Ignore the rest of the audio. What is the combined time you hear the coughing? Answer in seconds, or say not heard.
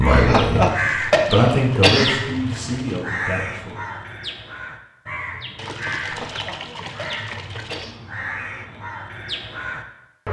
4 s.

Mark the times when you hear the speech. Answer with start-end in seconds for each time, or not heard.
0.0-3.8.